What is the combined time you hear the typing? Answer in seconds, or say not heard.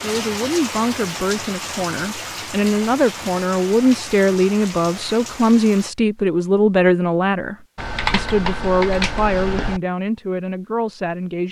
2 s.